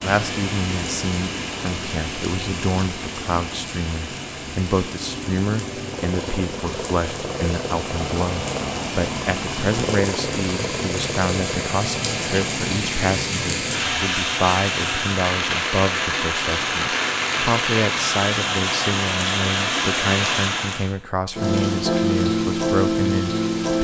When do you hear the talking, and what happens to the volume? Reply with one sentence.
The talking can be heard from 0.0 to 23.7 s, at a steady volume.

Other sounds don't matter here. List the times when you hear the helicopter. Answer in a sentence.
You can hear the helicopter from 4.8 to 12.8 s.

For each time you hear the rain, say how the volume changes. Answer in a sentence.
You can hear the rain from 0.0 to 23.7 s, getting louder.